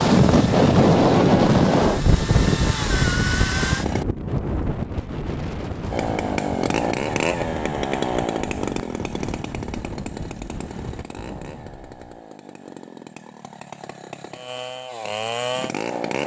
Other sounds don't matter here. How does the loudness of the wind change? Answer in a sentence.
The volume of the wind goes down.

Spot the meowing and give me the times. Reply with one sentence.
You can't hear the meowing here.